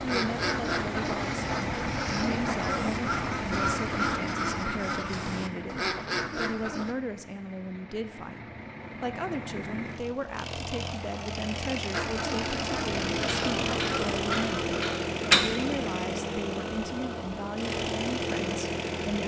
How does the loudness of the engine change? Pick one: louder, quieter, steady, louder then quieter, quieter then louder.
quieter then louder.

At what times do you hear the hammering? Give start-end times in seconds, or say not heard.
13.2-15.5.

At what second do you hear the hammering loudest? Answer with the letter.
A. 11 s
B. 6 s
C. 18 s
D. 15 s
D.